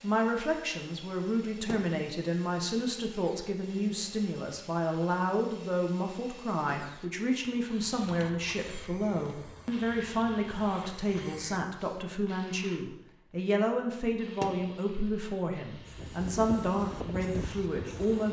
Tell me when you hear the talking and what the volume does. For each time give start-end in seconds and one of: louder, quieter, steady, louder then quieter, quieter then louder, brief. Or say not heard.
0.0-18.2 steady.